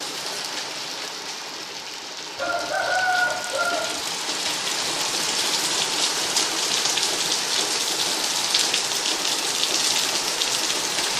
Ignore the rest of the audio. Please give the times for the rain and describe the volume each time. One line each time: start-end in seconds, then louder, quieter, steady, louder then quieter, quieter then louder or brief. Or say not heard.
0.0-11.1 louder.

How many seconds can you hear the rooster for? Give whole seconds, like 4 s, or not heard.
2 s.